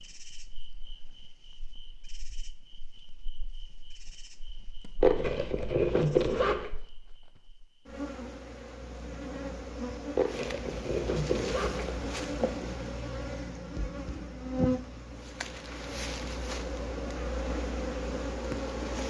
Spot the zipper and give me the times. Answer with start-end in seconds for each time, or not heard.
5.0-6.7, 10.2-12.7.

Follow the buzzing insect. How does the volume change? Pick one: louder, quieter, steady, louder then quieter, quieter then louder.
louder.